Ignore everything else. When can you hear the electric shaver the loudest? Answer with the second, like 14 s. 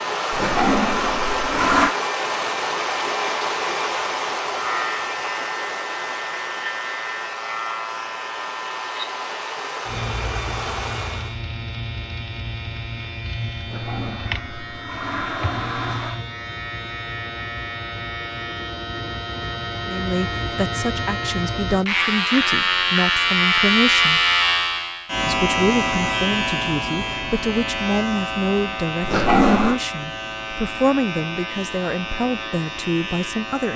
24 s.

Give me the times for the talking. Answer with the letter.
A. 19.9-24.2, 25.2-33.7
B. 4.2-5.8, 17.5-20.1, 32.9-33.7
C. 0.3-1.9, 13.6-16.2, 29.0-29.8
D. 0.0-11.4
A.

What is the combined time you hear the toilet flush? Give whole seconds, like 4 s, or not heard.
5 s.